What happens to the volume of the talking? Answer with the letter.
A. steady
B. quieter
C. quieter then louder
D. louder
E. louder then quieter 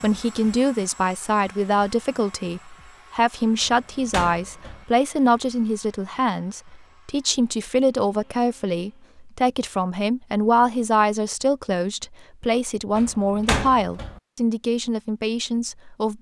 A.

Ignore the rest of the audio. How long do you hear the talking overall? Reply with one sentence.
You can hear the talking for 16 seconds altogether.